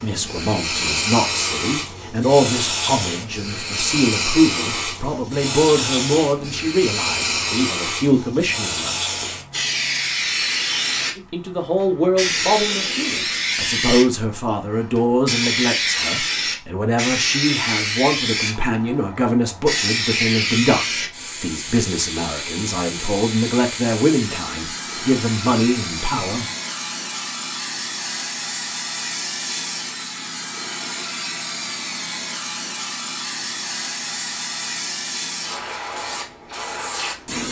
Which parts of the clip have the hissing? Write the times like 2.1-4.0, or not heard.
0.0-37.4.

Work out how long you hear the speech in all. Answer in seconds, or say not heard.
24 s.